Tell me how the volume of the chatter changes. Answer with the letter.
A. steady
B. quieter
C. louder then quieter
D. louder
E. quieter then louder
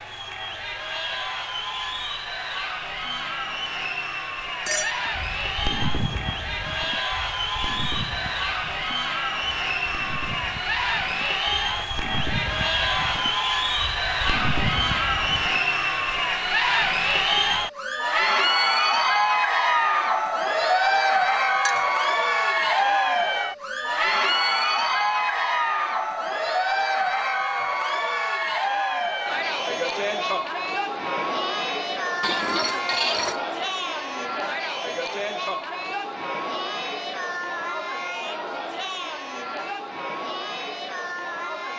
C.